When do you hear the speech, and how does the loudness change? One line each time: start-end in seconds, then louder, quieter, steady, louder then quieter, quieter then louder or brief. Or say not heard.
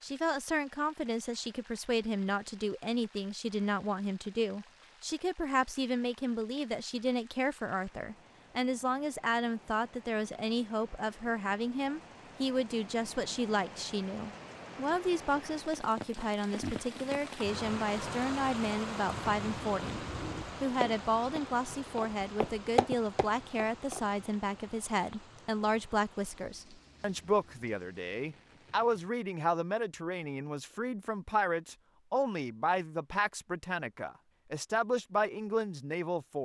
0.0-20.0 steady
20.6-36.4 steady.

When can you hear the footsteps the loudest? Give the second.
23 s.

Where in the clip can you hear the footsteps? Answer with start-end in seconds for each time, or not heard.
19.1-24.1.